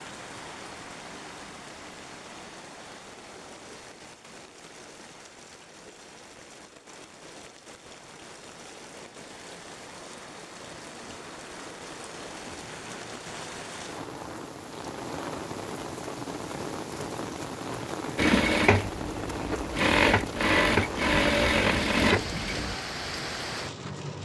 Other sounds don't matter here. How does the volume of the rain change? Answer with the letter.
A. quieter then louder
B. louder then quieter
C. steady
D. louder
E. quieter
D.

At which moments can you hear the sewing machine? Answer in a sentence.
You can hear the sewing machine from 18.1 to 22.8 s.